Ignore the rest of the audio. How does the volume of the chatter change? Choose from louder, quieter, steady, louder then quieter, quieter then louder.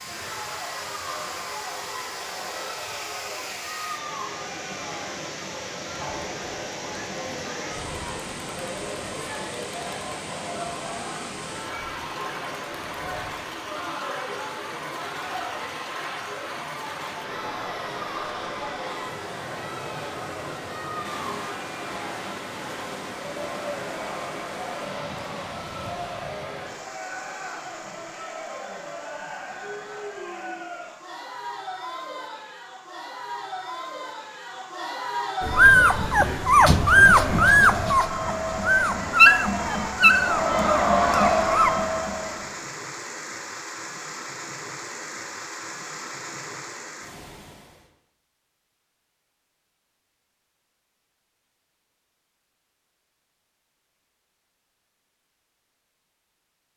louder.